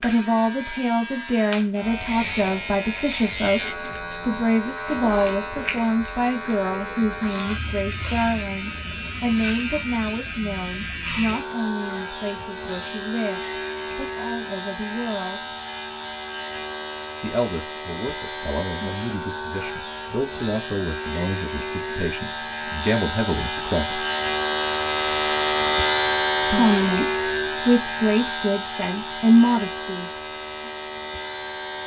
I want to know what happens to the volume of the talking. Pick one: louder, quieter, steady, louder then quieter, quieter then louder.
quieter then louder.